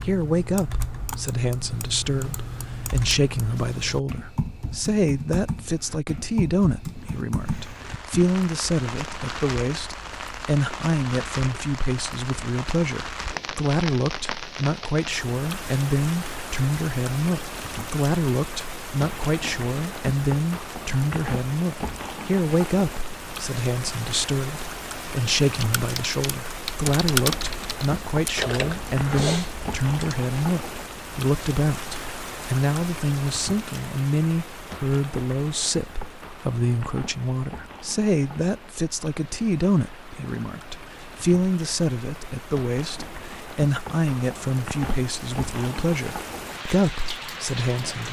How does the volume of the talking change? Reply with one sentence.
The volume of the talking stays about the same.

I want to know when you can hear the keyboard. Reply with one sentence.
The keyboard can be heard from 0.0 to 8.2 s and from 25.5 to 30.2 s.